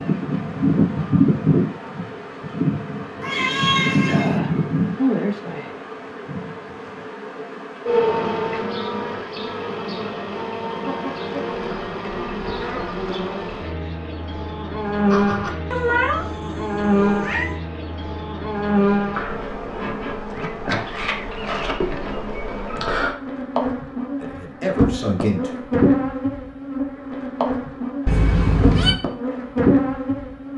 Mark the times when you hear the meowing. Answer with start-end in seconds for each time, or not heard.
3.2-4.4, 15.1-17.6, 28.1-28.9.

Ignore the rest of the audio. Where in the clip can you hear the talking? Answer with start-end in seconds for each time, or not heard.
24.2-25.6.